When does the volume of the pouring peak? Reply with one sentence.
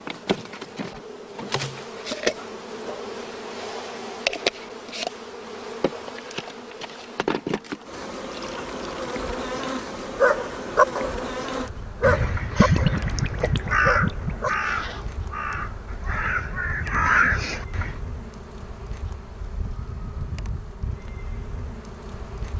The volume of the pouring peaks at 13 seconds.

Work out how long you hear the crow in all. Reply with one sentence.
You can hear the crow for 6 seconds altogether.